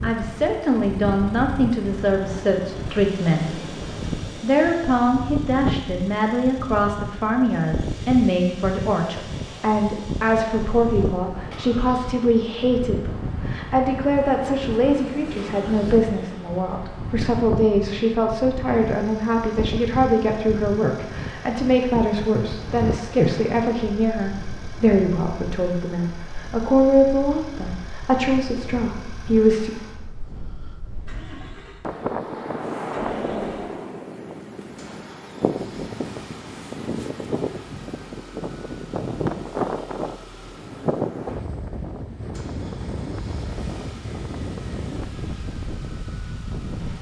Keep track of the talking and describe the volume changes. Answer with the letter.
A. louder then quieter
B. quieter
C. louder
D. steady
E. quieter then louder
D.